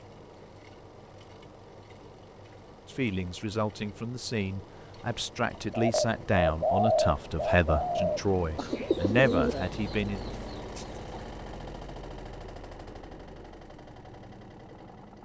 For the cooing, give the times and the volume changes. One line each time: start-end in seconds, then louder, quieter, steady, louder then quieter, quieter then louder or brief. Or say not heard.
5.7-11.2 quieter.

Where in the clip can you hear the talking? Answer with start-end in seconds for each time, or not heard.
2.9-10.2.